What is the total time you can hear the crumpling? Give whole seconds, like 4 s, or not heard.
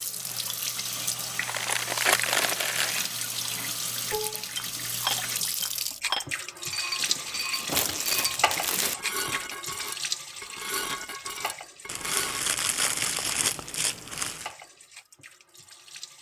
6 s.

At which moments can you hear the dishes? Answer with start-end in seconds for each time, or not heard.
4.1-12.6.